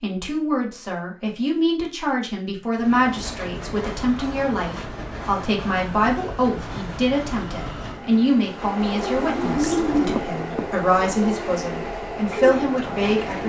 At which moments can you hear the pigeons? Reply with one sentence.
You can hear the pigeons from 8.8 to 13.4 s.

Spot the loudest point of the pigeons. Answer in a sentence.
The loudest moment of the pigeons is at 10 seconds.